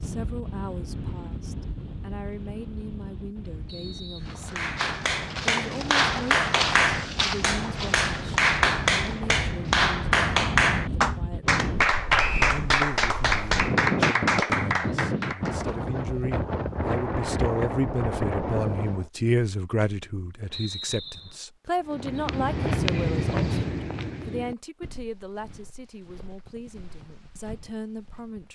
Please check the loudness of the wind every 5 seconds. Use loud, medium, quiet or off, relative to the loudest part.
medium, medium, loud, loud, off, off.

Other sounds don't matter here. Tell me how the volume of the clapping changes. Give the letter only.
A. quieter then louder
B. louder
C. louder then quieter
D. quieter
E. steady
E.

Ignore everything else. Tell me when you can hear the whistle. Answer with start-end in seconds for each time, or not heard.
3.6-4.7, 12.2-12.6, 20.5-21.4.